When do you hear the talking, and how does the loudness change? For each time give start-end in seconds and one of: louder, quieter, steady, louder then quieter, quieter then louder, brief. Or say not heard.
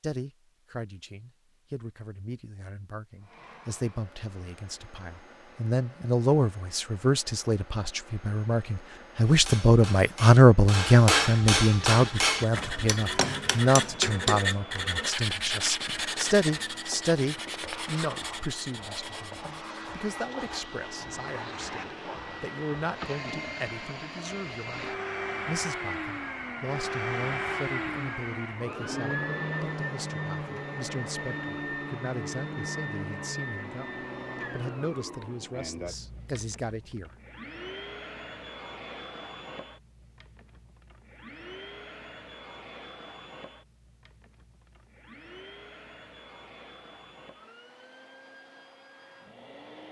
0.0-37.1 louder then quieter.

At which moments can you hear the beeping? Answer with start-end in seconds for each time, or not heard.
not heard.